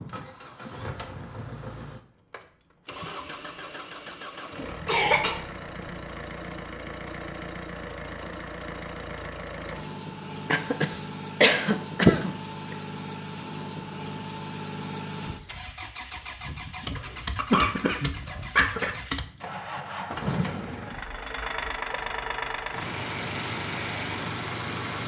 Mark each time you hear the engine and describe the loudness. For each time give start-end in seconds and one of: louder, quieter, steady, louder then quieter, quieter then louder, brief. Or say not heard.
0.0-25.0 louder.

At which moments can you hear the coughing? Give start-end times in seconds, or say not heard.
4.8-5.9, 10.5-12.8, 17.4-18.9.